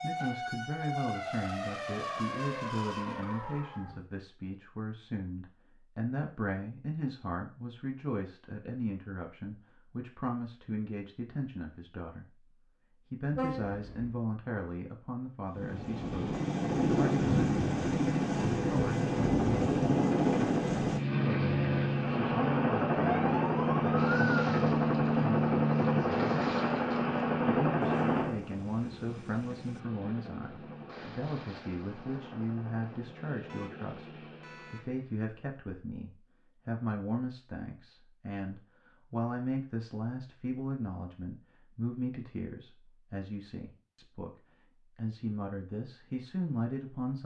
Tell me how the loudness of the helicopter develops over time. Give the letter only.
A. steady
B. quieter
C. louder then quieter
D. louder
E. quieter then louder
B.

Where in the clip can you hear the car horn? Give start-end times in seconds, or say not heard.
13.3-14.2, 27.8-29.8, 33.5-34.9.